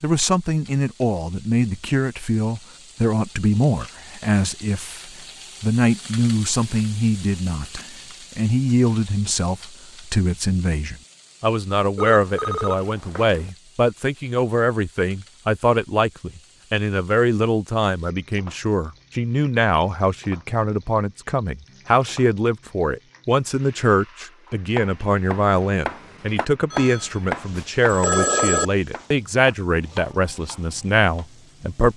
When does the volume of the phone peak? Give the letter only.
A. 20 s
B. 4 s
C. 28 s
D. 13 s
C.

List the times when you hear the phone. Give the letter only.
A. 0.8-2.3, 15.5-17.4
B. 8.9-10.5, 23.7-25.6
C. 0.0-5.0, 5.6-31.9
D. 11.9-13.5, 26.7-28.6
D.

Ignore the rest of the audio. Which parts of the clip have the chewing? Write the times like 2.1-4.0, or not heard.
not heard.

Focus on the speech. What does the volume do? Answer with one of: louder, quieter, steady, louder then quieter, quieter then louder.
steady.